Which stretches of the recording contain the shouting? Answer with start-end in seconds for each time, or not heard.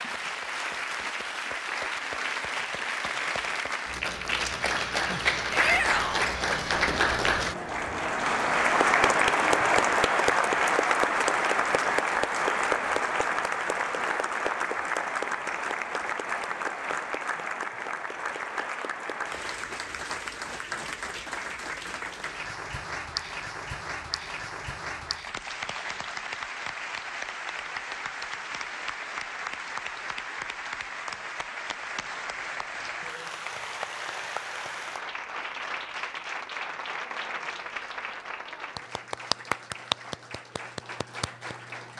5.5-6.3.